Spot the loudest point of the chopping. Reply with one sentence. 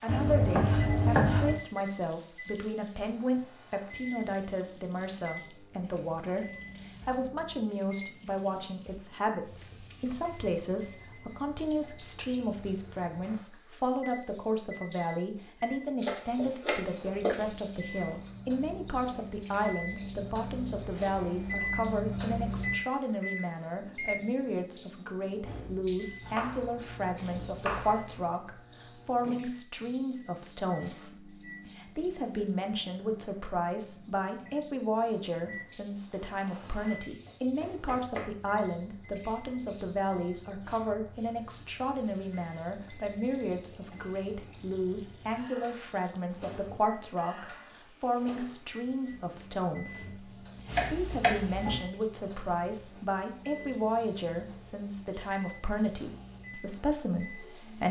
The volume of the chopping peaks at 1 second.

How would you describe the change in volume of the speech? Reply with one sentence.
The loudness of the speech stays about the same.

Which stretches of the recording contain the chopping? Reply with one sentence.
The chopping can be heard from 0.1 to 1.6 s, from 16.0 to 17.4 s, from 26.2 to 28.2 s, from 36.6 to 38.3 s and from 50.6 to 51.8 s.